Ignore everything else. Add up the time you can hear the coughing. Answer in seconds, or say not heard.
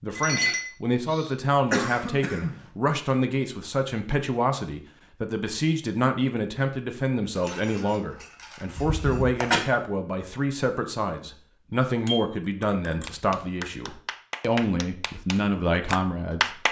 2 s.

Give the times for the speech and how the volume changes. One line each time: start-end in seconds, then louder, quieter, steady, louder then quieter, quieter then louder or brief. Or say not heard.
0.0-16.6 steady.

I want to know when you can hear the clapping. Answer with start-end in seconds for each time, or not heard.
13.1-16.6.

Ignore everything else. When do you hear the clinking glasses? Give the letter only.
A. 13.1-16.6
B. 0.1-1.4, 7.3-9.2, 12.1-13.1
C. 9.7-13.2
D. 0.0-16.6
B.